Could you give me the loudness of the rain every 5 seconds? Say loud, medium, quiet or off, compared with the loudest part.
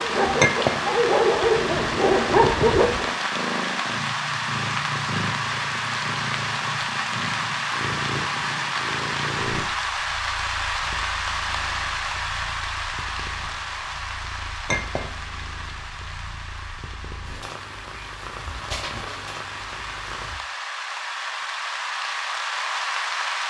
loud, loud, loud, medium, loud.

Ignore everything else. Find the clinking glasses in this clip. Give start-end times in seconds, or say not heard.
0.4-0.8, 14.7-15.1.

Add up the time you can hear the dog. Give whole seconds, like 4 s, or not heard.
3 s.